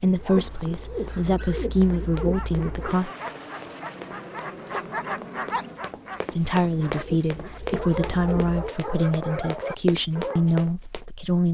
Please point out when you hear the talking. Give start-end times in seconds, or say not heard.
0.0-3.1, 6.3-11.4.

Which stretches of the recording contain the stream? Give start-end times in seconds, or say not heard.
not heard.